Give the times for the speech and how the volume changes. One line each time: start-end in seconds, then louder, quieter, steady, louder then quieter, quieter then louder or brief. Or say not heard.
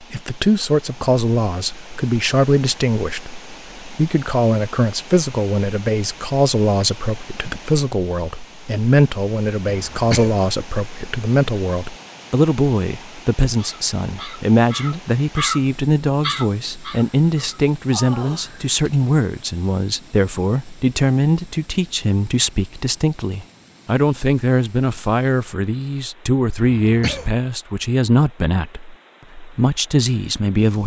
0.1-30.8 steady.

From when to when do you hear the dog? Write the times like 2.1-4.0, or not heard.
not heard.